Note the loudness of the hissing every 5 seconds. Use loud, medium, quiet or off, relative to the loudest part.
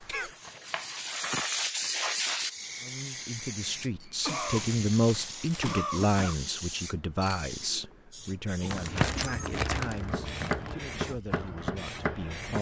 loud, medium, medium.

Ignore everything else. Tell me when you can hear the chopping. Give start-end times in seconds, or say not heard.
0.0-1.6, 9.9-12.5.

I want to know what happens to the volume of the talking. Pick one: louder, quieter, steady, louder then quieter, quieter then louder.
quieter.